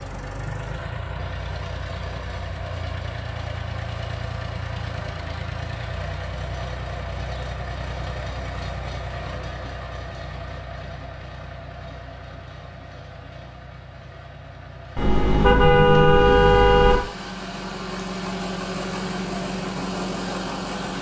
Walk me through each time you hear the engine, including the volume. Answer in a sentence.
The engine can be heard from 0.0 to 20.9 s, getting quieter then louder.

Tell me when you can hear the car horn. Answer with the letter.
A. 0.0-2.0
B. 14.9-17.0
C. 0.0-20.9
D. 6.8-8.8
B.